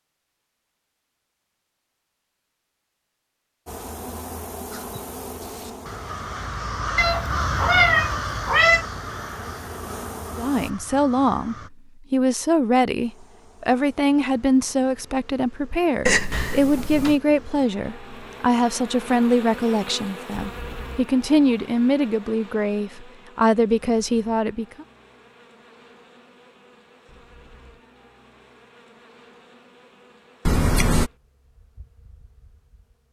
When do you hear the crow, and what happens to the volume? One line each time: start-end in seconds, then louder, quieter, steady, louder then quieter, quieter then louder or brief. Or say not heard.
4.7-11.7 louder then quieter.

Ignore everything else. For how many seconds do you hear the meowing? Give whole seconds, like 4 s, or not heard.
4 s.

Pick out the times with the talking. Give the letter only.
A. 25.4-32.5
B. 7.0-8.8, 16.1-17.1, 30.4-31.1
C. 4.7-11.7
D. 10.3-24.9
D.